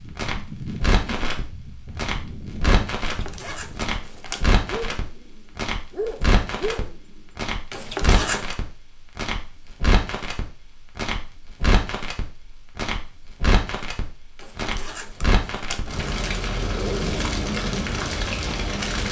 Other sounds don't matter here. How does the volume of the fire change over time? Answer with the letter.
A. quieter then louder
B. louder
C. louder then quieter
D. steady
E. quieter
D.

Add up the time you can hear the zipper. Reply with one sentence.
You can hear the zipper for 4 seconds altogether.